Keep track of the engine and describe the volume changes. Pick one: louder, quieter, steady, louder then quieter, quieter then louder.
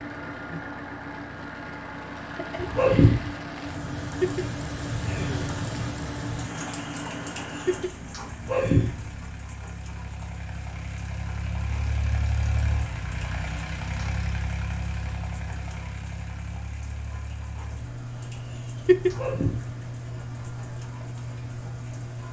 steady.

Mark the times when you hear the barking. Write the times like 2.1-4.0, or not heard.
2.5-3.3, 8.3-9.1, 19.0-19.8.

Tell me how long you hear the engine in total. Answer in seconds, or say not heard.
22 s.